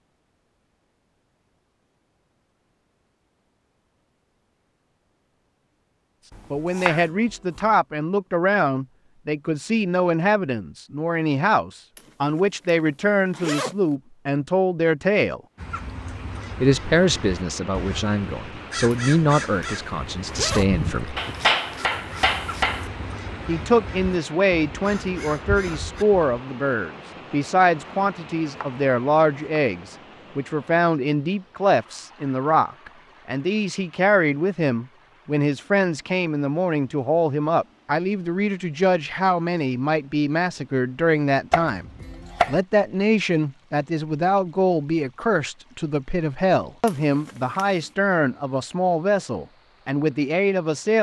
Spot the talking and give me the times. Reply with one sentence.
The talking can be heard from 6.5 to 15.4 s, from 16.6 to 21.2 s and from 23.4 to 50.9 s.